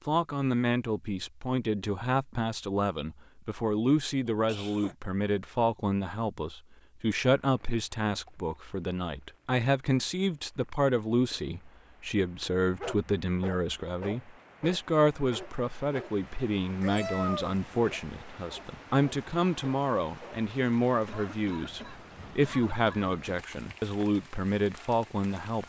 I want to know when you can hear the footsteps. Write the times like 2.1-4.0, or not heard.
not heard.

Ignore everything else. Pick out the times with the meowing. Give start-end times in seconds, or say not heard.
16.8-17.7.